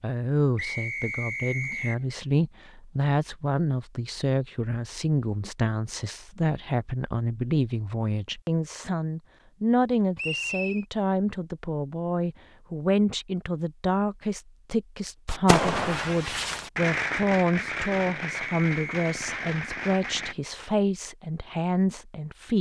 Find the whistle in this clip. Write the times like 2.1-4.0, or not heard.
0.6-1.9, 10.2-10.8, 18.4-19.1.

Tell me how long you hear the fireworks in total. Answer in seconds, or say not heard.
5 s.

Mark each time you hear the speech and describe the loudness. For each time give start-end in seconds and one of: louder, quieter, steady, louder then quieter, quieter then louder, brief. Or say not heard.
0.0-22.5 steady.